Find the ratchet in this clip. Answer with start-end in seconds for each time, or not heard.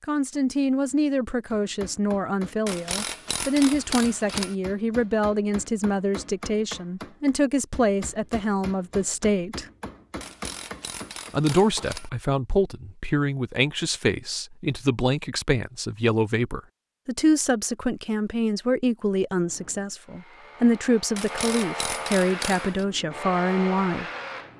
2.6-4.5, 10.2-12.1, 21.1-22.9.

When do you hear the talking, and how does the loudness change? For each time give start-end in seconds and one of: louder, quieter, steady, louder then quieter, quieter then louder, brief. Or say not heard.
0.0-9.7 steady
11.3-24.1 steady.